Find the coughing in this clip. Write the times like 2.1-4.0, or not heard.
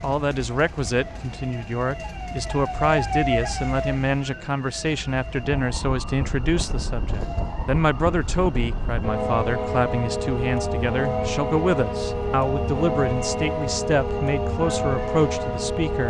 not heard.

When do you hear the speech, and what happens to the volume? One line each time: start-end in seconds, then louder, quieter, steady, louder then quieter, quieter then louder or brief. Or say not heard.
0.0-16.0 steady.